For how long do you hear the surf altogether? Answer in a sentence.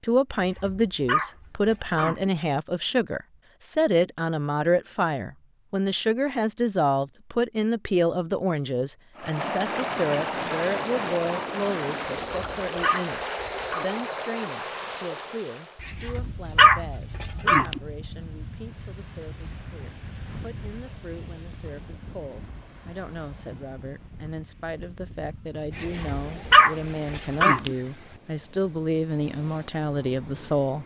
The surf can be heard for 22 seconds in total.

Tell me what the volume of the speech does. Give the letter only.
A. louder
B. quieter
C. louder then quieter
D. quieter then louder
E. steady
D.